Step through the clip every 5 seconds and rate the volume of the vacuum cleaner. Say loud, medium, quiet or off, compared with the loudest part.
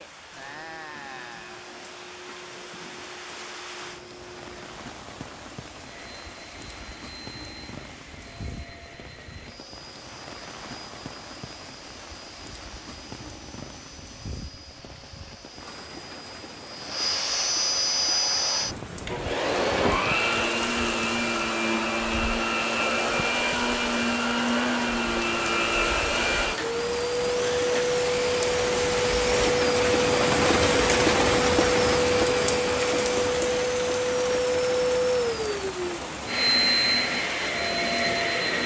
quiet, quiet, quiet, loud, loud, loud, loud, loud.